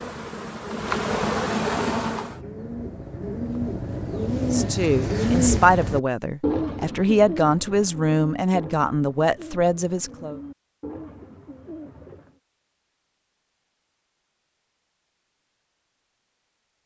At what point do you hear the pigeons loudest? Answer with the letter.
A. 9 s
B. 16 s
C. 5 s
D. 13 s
C.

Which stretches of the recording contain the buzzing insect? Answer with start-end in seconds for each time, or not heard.
0.0-2.4.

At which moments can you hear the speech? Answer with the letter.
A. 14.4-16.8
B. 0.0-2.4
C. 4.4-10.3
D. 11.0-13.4
C.